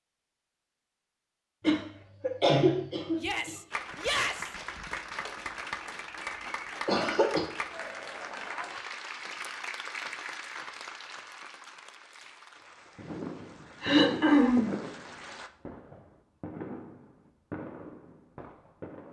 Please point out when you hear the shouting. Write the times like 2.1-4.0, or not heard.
3.1-4.5.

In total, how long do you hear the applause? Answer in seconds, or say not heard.
12 s.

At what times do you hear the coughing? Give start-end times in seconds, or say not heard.
1.6-3.5, 6.8-7.5, 13.8-14.8.